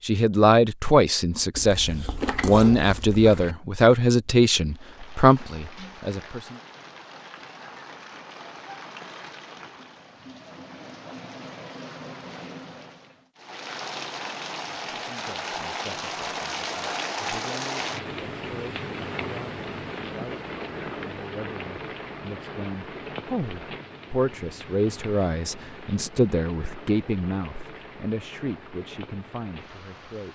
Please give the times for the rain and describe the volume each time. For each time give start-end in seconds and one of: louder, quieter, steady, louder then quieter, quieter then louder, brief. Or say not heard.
4.7-30.2 louder then quieter.